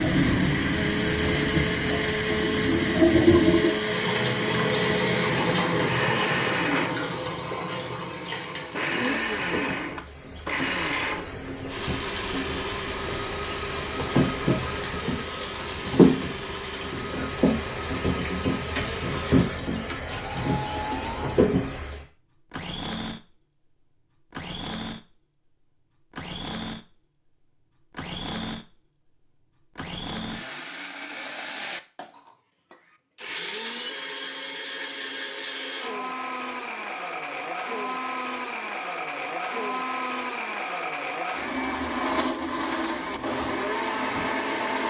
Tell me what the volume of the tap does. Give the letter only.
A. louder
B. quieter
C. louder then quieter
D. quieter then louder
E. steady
D.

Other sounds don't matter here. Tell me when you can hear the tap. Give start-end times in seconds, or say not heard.
0.0-22.1.